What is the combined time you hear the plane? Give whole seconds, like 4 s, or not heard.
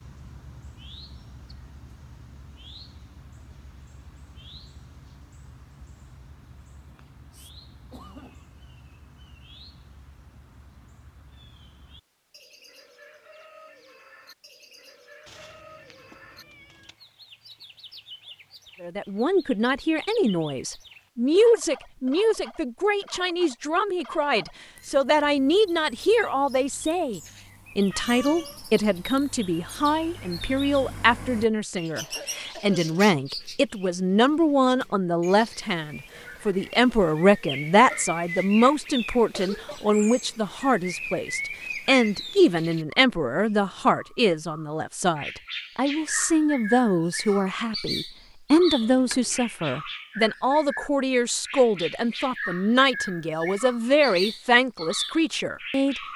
not heard.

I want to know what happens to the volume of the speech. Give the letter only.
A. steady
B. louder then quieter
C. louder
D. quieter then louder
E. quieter
A.